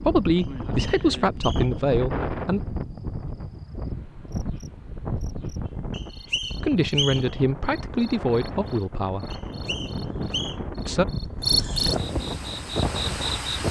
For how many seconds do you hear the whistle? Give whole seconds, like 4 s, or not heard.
4 s.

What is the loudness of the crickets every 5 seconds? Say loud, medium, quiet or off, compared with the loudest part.
quiet, quiet, loud.